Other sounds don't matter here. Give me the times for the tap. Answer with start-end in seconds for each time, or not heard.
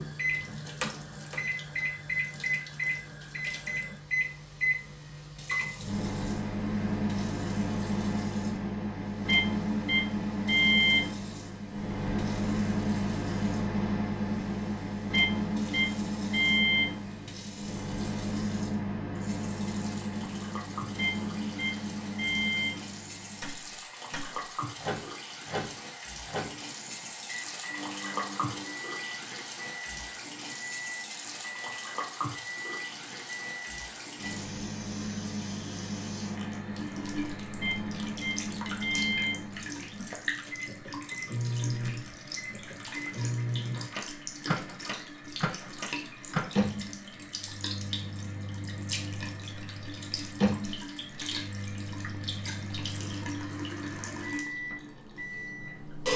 0.0-56.1.